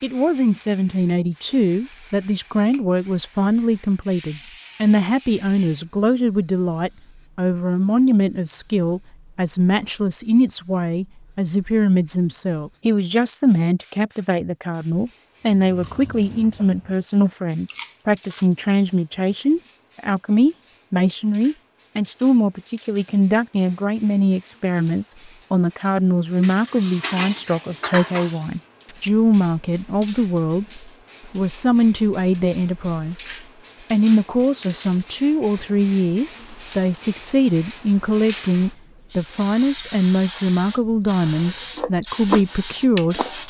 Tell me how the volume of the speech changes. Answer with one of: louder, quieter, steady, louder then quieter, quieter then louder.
steady.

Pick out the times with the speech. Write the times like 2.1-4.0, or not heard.
0.0-33.2, 33.9-43.4.